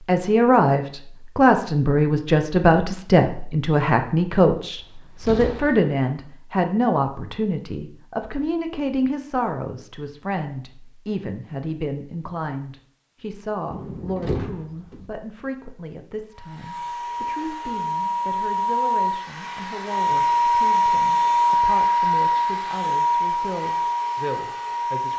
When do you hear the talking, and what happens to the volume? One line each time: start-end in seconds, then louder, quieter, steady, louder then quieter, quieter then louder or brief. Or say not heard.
0.1-25.1 quieter.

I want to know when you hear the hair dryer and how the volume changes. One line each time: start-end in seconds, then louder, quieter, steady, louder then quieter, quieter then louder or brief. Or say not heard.
16.3-25.1 louder then quieter.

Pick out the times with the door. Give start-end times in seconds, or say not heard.
4.8-6.0, 13.7-15.1.